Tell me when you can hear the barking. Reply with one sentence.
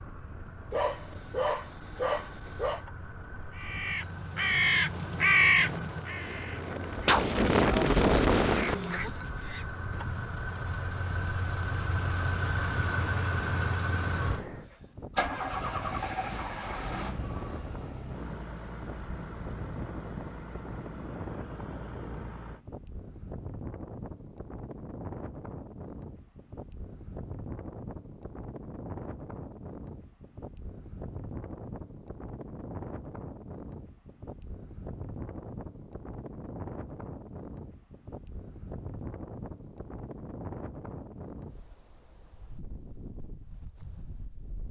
The barking can be heard from 0.7 to 2.9 s.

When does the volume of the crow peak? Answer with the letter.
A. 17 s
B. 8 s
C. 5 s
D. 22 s
C.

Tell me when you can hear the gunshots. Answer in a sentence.
You can't hear the gunshots here.